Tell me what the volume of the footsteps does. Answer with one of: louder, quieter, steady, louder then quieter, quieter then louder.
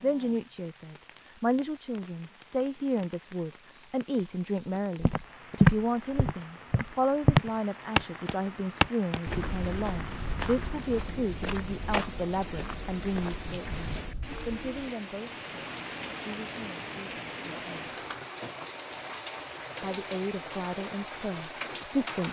quieter.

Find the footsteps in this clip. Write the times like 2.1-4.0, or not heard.
5.0-14.9.